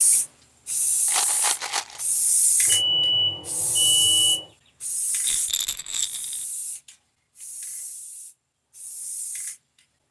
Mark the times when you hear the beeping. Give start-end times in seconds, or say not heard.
2.6-4.5.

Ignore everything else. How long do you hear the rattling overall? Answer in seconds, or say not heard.
2 s.